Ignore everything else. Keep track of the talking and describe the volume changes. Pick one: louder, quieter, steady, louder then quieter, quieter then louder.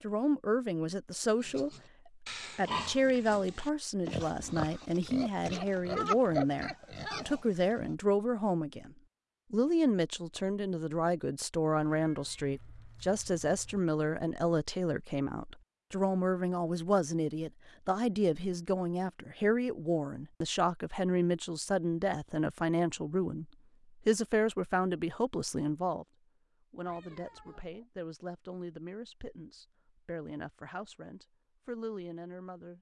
quieter.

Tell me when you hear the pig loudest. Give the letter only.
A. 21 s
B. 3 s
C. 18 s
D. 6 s
D.